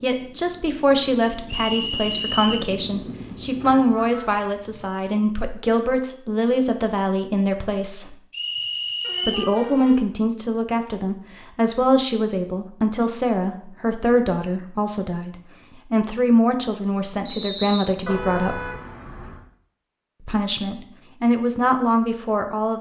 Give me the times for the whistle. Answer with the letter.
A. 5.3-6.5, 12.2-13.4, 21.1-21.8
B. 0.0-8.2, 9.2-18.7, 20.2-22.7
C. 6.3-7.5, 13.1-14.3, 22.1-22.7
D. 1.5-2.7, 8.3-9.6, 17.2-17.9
D.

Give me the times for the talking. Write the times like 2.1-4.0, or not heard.
0.0-8.2, 9.2-18.7, 20.2-22.7.